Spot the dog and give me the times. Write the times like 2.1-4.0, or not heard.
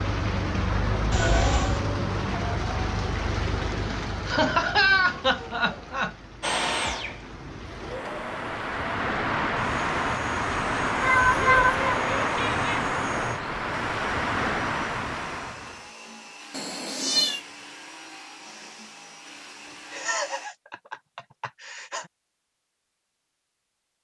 not heard.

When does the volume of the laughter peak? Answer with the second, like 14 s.
5 s.